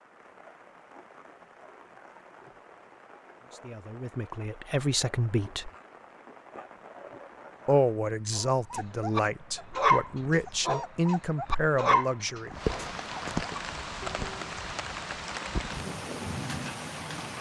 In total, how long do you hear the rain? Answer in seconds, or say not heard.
17 s.